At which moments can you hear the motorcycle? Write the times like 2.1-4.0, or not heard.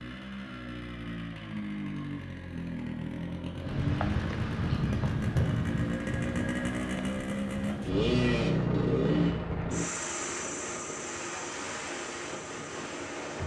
0.0-13.4.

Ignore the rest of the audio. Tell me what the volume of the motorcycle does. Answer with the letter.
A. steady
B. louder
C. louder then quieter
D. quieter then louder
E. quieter
C.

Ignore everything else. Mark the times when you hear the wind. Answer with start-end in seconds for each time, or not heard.
3.5-13.4.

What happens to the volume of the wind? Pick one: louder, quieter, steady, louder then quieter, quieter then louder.
quieter.